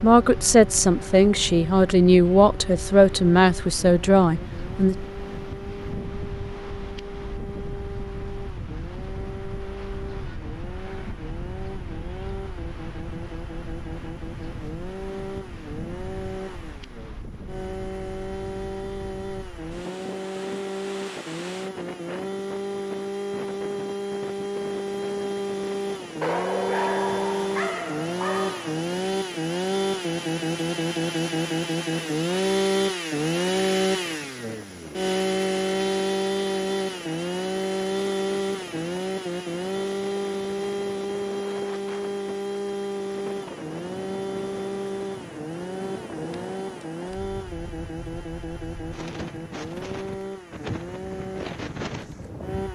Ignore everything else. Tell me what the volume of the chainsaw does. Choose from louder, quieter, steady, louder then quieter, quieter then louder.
louder then quieter.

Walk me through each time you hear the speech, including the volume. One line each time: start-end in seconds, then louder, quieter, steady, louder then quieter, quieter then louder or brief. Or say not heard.
0.0-5.0 steady.